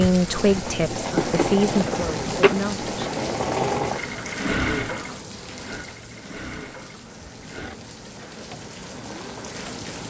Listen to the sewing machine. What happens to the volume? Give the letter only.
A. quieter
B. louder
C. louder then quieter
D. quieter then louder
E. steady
A.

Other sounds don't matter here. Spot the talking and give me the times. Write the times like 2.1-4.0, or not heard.
0.0-2.9.